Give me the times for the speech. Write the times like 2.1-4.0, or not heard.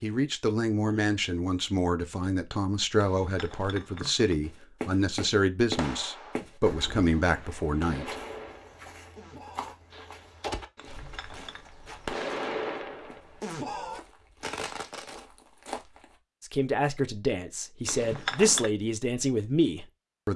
0.0-8.2, 16.4-20.3.